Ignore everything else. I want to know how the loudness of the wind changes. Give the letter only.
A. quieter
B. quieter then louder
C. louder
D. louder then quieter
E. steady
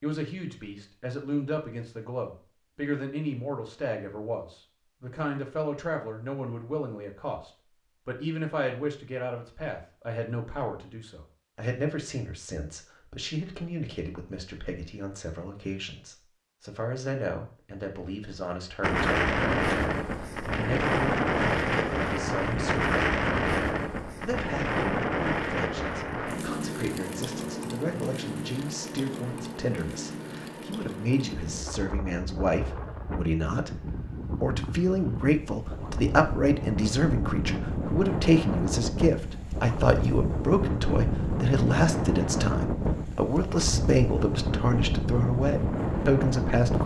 B.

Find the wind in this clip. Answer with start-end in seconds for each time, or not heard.
18.8-46.8.